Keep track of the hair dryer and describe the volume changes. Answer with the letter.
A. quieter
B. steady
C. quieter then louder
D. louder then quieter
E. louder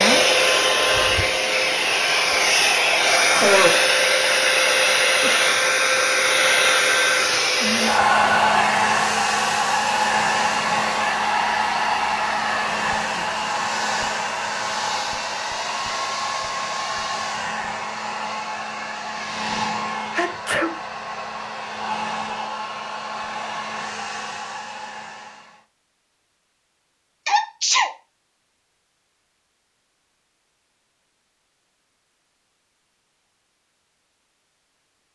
A.